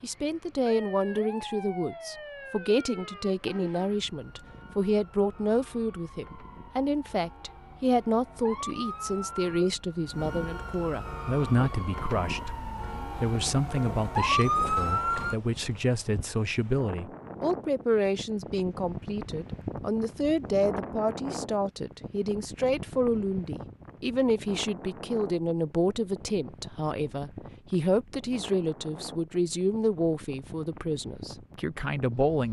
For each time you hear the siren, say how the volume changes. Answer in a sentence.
The siren can be heard from 0.0 to 15.3 s, getting quieter then louder.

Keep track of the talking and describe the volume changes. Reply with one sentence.
The loudness of the talking stays about the same.